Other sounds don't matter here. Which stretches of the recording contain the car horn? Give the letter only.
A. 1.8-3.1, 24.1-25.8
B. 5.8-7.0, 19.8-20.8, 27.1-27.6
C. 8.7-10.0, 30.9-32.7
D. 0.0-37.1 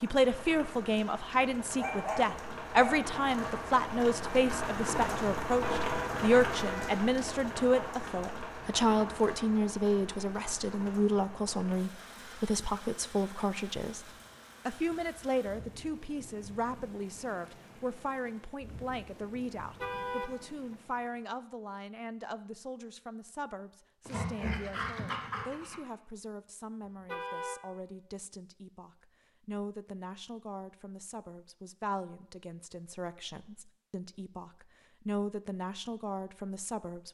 B.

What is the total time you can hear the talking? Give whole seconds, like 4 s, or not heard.
37 s.